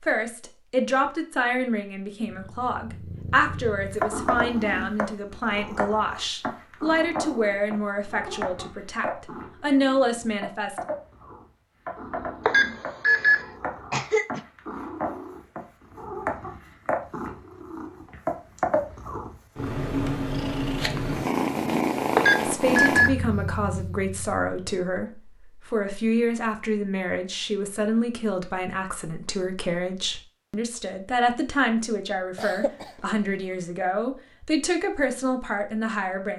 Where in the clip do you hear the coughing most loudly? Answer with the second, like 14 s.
14 s.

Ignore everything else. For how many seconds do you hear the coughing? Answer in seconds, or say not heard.
2 s.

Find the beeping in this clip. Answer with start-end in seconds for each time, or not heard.
12.4-13.4, 22.1-23.1.